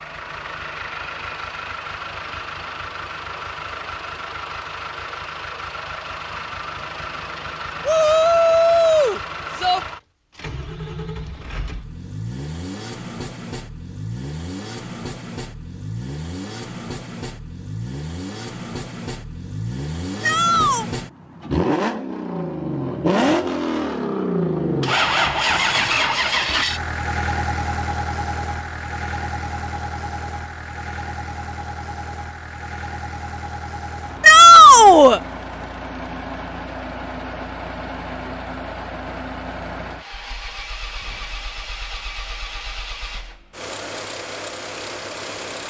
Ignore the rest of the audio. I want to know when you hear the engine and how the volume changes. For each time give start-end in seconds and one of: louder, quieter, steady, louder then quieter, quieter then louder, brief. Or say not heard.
0.0-45.6 louder then quieter.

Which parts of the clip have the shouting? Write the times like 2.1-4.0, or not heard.
7.8-9.8, 20.2-20.9, 34.2-35.2.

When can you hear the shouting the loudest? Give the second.
35 s.